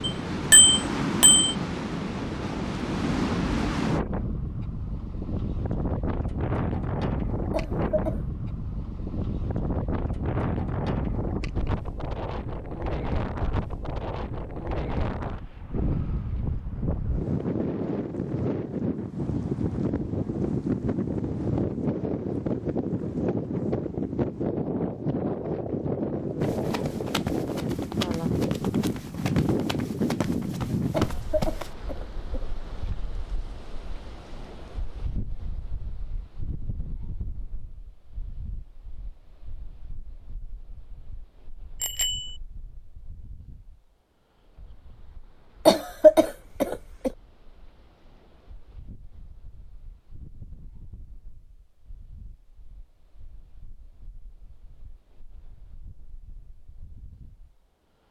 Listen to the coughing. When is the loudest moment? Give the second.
46 s.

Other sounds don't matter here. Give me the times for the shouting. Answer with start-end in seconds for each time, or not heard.
not heard.